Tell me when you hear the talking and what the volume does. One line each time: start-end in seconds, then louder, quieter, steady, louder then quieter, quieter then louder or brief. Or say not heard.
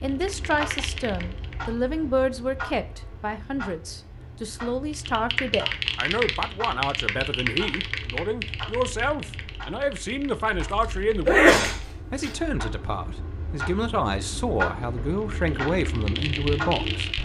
0.0-17.1 steady.